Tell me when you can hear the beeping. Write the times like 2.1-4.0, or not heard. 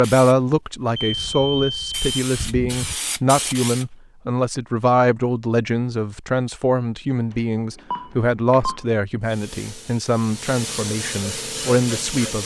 0.9-3.0, 7.3-8.8.